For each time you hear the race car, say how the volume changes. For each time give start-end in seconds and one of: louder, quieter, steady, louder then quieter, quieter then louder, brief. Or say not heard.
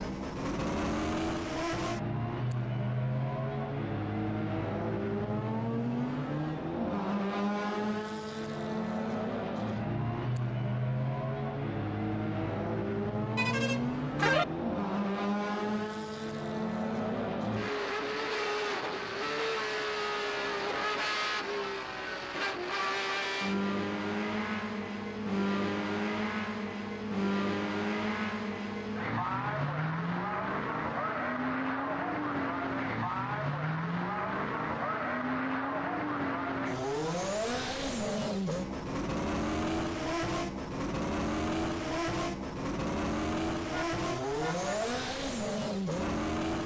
0.0-46.6 steady.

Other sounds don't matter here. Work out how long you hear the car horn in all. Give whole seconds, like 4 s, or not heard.
2 s.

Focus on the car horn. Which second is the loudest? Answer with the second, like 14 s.
14 s.